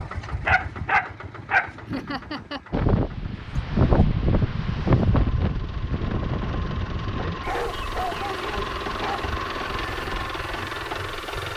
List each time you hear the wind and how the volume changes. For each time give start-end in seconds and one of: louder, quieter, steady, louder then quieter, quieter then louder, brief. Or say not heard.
2.7-11.5 quieter.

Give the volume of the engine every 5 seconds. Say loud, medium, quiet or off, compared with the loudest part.
medium, loud, loud.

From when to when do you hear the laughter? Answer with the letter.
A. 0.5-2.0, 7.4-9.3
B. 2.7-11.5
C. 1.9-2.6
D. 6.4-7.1
C.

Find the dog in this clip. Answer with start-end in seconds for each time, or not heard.
0.5-2.0, 7.4-9.3.